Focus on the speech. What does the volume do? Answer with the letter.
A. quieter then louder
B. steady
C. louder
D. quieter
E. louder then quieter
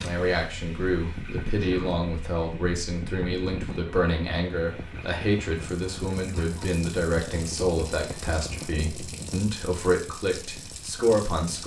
B.